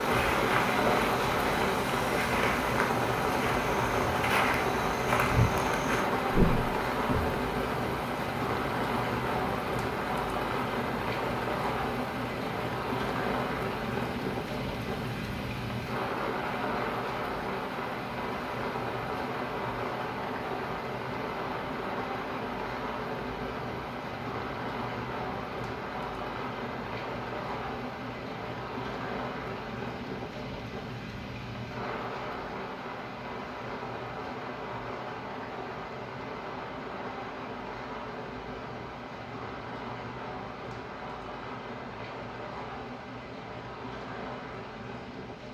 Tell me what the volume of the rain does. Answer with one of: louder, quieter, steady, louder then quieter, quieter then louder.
quieter.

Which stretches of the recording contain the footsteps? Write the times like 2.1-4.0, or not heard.
0.0-7.2.